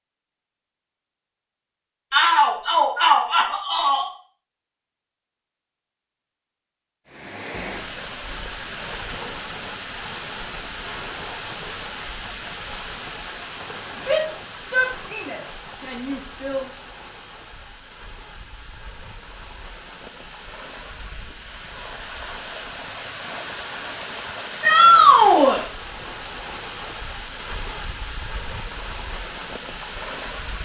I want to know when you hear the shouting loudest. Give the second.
25 s.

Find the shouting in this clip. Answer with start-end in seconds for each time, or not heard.
2.1-4.0, 14.1-16.6, 24.6-25.6.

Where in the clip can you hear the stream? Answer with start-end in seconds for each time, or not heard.
7.0-30.6.